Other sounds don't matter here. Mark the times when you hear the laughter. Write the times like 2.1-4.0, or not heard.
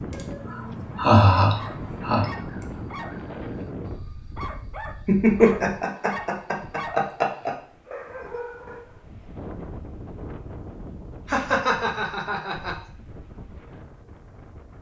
0.1-2.6, 5.0-7.5, 11.2-12.8.